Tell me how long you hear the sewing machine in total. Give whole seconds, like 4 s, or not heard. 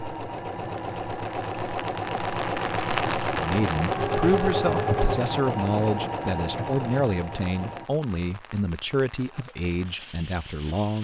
8 s.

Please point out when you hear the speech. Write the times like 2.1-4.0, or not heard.
3.4-11.0.